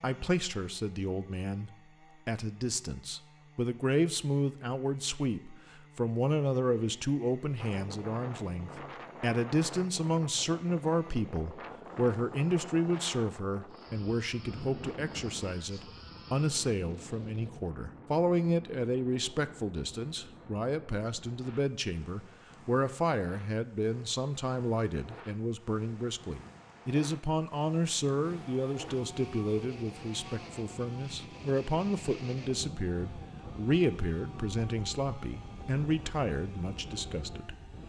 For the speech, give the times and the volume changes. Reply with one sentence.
You can hear the speech from 0.0 to 37.5 s, at a steady volume.